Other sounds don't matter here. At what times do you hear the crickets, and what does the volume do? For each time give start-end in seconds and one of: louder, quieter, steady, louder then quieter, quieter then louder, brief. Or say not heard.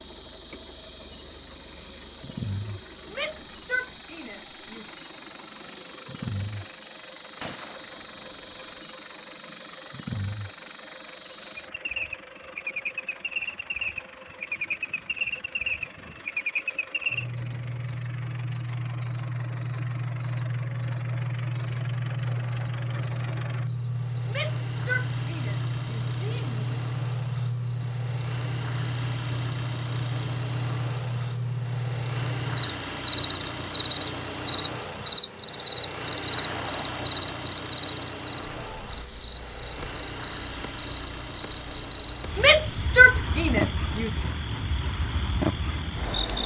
0.0-46.4 louder.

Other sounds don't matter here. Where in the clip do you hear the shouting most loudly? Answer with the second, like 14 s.
43 s.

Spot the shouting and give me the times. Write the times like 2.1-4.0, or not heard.
3.1-5.0, 24.2-26.8, 42.4-44.1.